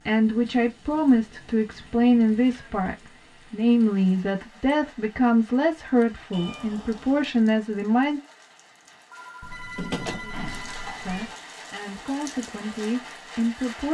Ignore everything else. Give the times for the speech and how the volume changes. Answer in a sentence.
You can hear the speech from 0.1 to 8.2 s, at a steady volume; and briefly from 11.1 to 13.8 s.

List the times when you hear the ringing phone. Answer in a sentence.
You can hear the ringing phone from 9.1 to 11.1 s.